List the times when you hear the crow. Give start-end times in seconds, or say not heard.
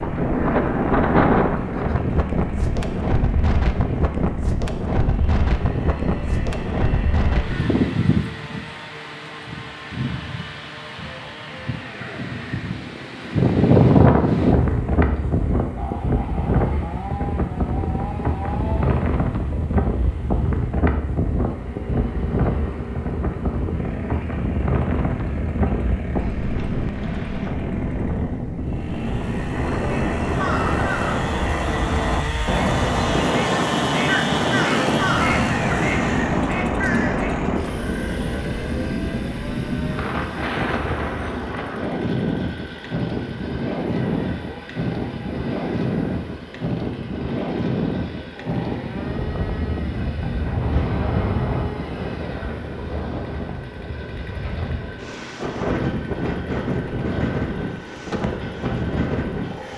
29.9-37.6.